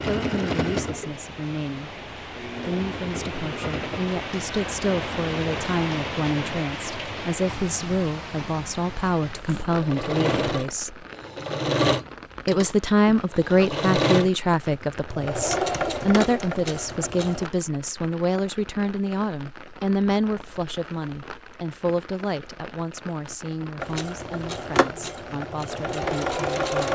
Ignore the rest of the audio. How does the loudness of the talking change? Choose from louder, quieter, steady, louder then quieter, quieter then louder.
louder then quieter.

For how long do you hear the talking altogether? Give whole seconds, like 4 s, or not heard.
25 s.